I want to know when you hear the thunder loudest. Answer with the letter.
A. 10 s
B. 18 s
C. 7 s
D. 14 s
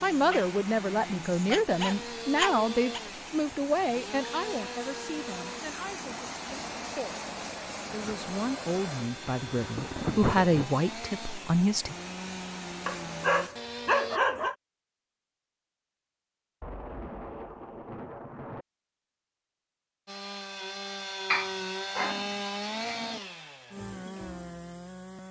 A.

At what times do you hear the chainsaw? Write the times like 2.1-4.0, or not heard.
0.0-14.2, 20.1-25.2.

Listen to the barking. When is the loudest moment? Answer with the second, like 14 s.
14 s.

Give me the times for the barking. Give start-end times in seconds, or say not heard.
0.1-3.0, 12.8-14.6, 21.3-23.2.